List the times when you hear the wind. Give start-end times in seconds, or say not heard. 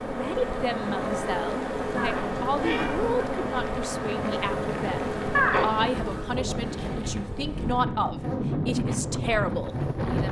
0.0-10.2.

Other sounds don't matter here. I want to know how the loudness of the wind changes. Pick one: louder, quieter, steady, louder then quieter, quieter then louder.
louder.